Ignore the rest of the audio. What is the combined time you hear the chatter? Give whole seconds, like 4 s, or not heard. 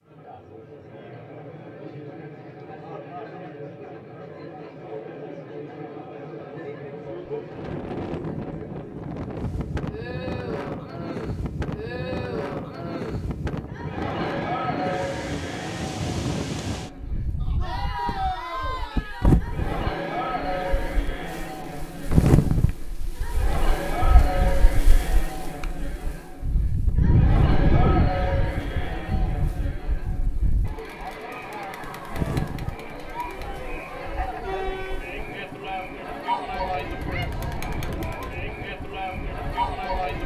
40 s.